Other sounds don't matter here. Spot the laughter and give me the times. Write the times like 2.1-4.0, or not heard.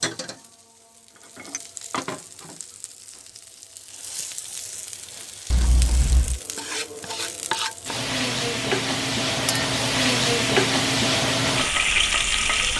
not heard.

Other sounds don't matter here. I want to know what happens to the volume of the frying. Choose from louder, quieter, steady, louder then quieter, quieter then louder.
louder.